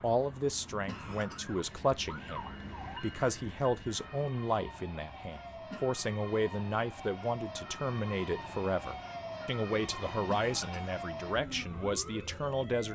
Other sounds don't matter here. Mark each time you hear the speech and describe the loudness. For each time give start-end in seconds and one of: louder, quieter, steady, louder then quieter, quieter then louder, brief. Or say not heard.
0.0-12.8 steady.